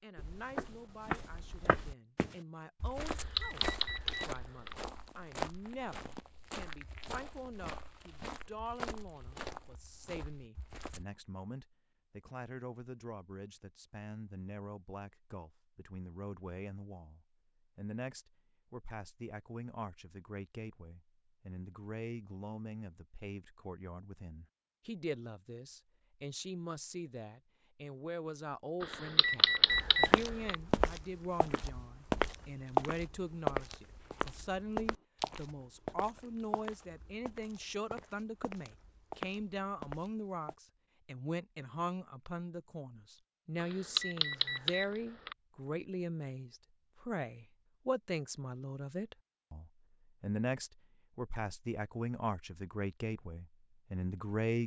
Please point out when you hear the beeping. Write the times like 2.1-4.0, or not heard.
3.0-4.8, 28.8-30.6, 43.6-45.4.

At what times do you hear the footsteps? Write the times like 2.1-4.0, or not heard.
0.1-11.1, 29.7-40.5.